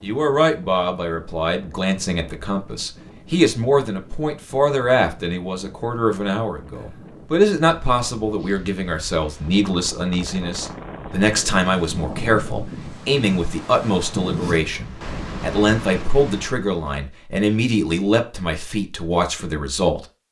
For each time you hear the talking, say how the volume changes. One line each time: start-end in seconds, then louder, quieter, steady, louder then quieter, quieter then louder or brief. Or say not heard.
0.0-20.1 steady.